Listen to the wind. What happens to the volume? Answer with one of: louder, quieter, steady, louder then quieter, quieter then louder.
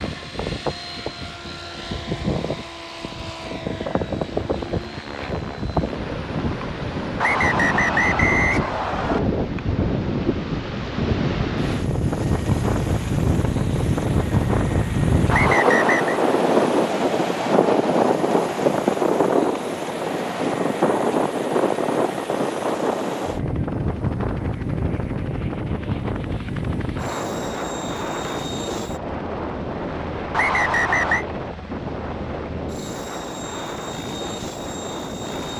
louder then quieter.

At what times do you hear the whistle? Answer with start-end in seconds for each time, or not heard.
7.2-9.2, 15.3-16.2, 30.3-31.2.